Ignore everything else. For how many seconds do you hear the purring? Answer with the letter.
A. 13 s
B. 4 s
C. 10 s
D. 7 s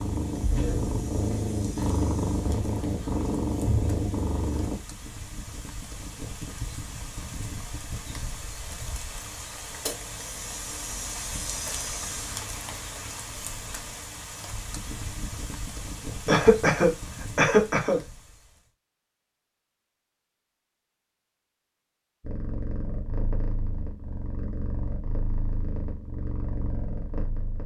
C.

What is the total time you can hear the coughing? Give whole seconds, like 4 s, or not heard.
2 s.